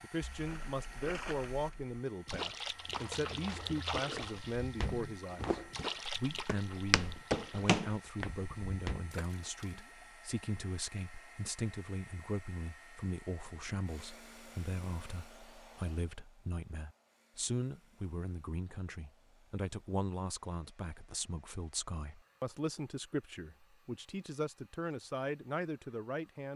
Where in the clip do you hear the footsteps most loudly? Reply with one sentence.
The loudest moment of the footsteps is at 8 seconds.